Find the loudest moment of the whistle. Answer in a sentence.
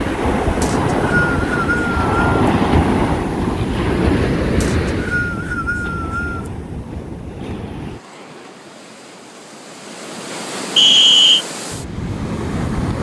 The loudest moment of the whistle is at 11 seconds.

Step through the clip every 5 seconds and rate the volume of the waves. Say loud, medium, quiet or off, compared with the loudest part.
loud, quiet, medium.